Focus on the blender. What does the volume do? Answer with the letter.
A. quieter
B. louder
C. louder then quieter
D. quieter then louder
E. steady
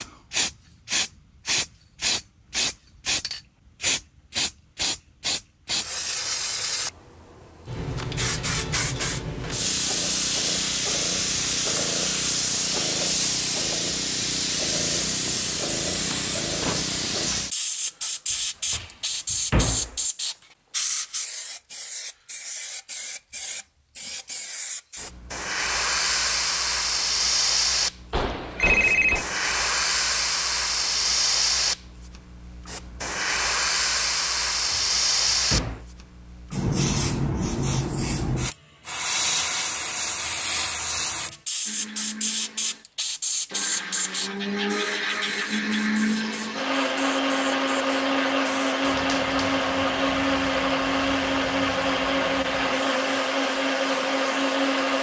B.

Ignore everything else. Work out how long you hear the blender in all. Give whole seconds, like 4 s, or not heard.
13 s.